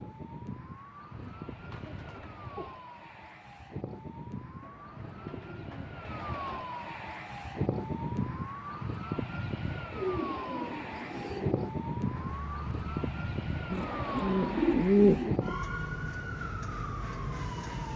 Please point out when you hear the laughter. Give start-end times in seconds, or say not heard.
not heard.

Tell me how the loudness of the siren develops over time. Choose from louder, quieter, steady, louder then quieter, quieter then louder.
louder.